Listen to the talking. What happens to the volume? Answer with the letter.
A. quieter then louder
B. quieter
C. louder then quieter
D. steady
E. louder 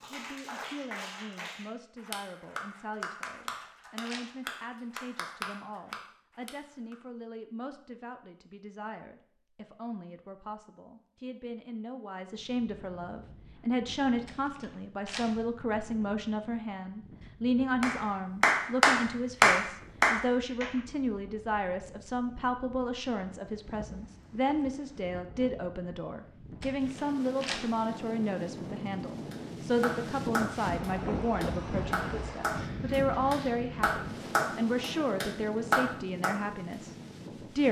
E.